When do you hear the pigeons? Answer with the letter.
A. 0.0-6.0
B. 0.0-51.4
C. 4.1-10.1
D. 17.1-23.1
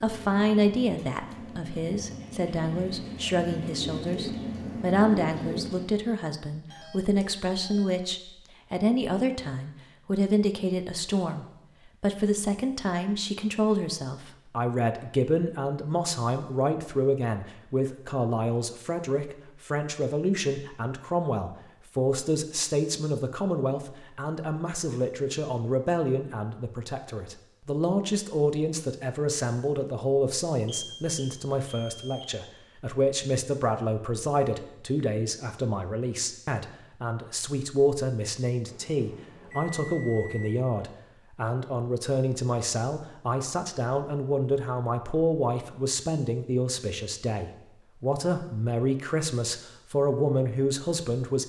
A.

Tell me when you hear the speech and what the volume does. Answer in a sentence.
The speech can be heard from 0.0 to 51.4 s, at a steady volume.